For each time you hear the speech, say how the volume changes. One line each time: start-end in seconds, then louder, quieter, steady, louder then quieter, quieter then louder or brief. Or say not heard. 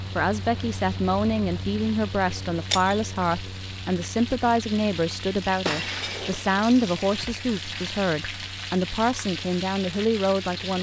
0.1-10.7 steady.